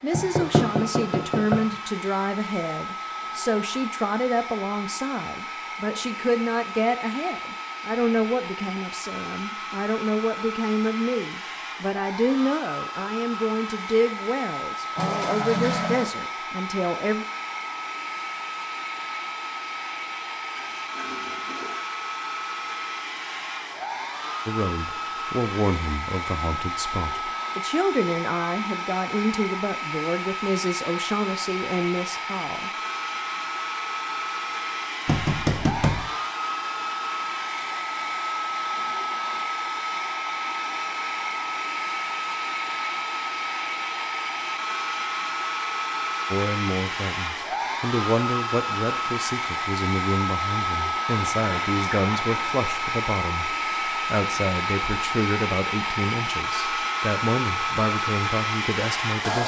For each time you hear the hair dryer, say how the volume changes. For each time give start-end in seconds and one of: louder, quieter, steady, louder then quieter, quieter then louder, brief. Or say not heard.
0.0-59.4 louder.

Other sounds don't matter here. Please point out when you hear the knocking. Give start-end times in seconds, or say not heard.
0.1-1.6, 35.0-36.0.